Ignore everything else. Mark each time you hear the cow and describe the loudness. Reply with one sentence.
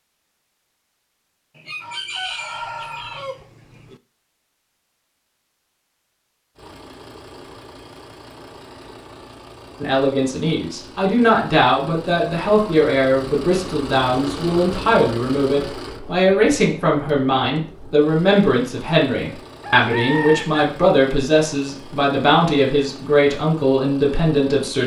You can't hear the cow here.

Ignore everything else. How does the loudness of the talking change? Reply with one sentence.
The loudness of the talking stays about the same.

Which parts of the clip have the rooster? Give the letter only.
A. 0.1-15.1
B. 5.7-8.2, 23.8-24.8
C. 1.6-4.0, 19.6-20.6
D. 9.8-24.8
C.